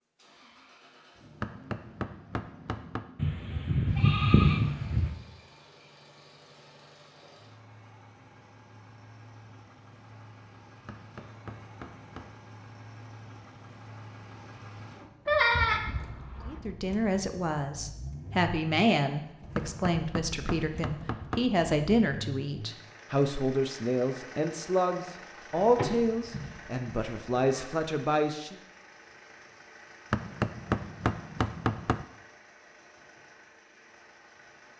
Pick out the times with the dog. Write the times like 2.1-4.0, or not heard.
not heard.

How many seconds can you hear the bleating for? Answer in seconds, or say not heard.
5 s.